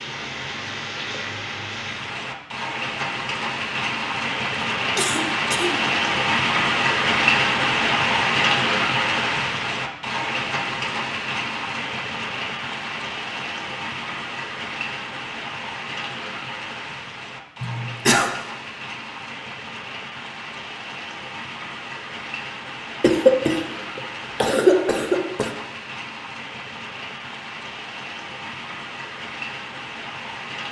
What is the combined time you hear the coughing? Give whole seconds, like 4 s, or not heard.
4 s.